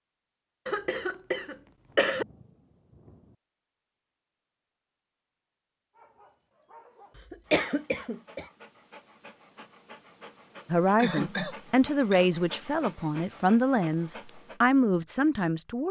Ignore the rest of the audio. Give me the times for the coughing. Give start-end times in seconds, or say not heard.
0.7-2.2, 7.3-8.4, 10.9-12.2.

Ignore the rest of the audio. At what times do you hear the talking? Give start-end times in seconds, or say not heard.
10.7-15.8.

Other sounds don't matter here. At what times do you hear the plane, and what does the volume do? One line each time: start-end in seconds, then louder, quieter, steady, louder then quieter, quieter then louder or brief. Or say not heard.
not heard.